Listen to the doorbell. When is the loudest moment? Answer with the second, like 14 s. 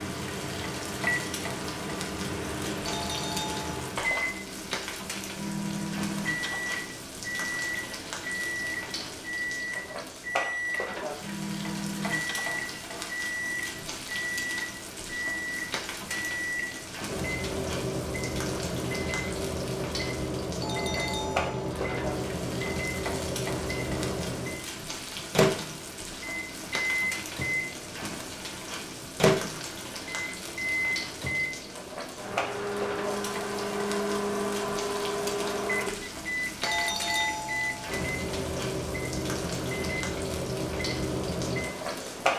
37 s.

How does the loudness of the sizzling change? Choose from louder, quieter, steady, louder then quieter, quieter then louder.
steady.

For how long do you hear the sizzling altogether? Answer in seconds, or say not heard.
42 s.